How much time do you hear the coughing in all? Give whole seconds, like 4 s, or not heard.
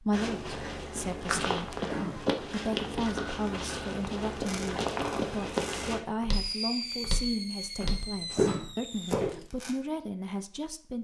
2 s.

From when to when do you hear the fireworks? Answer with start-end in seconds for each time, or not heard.
4.5-9.8.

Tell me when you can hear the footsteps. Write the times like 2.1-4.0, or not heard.
0.1-9.4.